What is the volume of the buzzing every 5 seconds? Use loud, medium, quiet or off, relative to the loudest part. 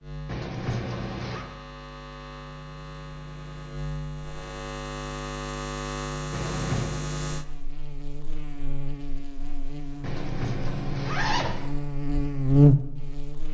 quiet, medium, loud.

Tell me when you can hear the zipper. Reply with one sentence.
The zipper can be heard from 0.2 to 1.4 s, from 6.3 to 7.0 s and from 10.0 to 11.7 s.